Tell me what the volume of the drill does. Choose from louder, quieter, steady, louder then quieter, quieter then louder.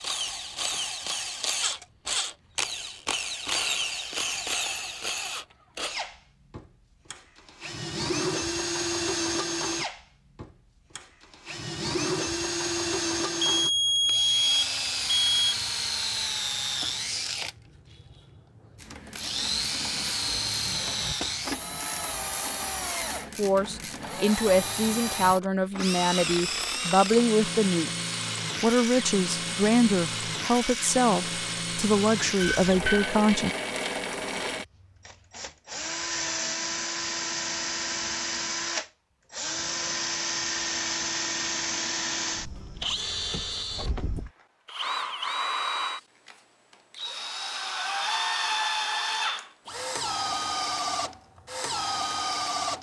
steady.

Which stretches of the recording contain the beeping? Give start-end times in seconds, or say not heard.
13.4-15.6, 32.4-33.1.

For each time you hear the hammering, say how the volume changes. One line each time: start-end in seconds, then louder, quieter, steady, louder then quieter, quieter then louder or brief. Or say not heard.
not heard.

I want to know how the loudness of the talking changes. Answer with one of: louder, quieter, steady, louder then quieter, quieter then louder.
steady.